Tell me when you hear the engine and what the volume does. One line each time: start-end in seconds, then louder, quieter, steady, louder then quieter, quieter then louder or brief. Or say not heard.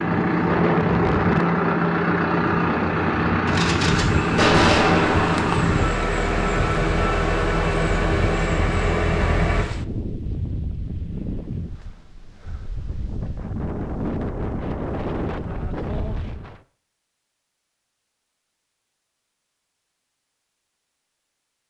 0.0-9.7 steady.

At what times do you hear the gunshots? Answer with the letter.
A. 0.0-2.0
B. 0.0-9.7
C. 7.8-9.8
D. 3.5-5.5
D.